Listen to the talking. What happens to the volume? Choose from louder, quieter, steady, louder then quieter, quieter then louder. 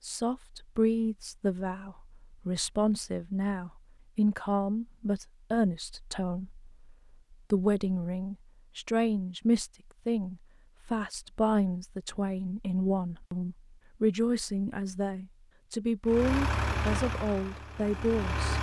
steady.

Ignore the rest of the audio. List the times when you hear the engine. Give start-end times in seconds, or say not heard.
16.1-18.5.